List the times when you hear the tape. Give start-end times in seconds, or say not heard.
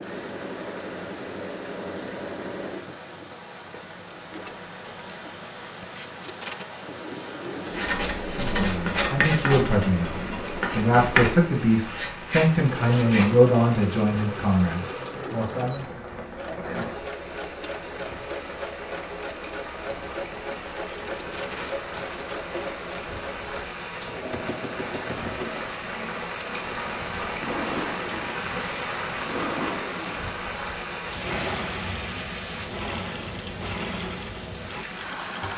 6.0-6.7, 20.9-22.2.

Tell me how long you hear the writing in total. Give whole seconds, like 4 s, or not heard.
6 s.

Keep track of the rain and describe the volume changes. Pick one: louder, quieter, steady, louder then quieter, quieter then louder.
louder.